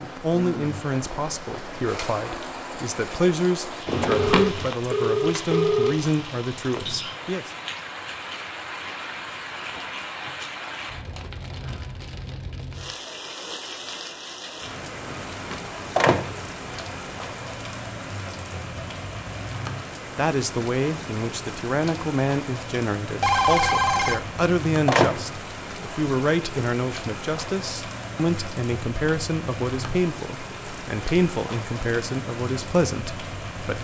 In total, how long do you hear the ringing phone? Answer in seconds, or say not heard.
3 s.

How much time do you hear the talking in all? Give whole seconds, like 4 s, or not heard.
21 s.